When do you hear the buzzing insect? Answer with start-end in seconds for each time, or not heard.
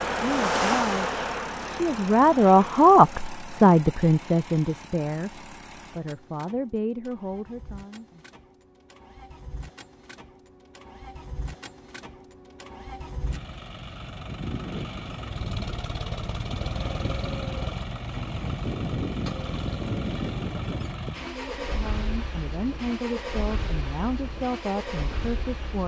0.0-3.1.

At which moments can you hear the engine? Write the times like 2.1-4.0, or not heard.
0.0-25.8.